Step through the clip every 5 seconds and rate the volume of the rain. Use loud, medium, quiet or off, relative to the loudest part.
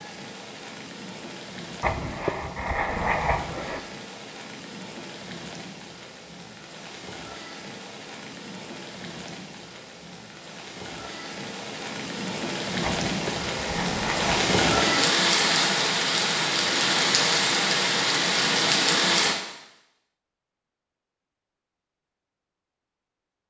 quiet, quiet, medium, loud, off.